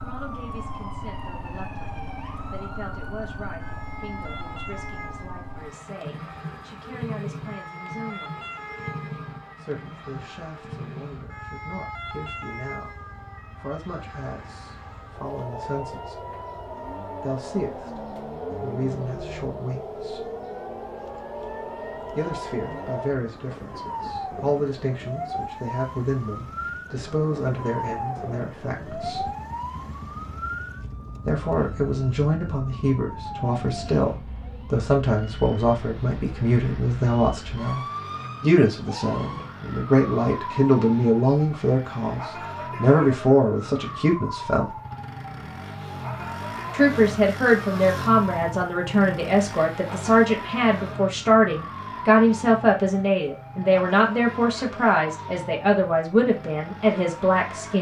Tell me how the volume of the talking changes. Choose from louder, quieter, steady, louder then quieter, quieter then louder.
louder.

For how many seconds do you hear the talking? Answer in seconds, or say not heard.
50 s.